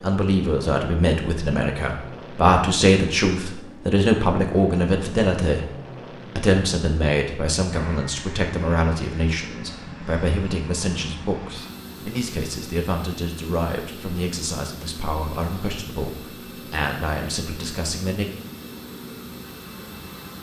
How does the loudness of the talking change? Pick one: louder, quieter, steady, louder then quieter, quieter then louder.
quieter.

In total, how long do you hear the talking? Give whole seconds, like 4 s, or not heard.
18 s.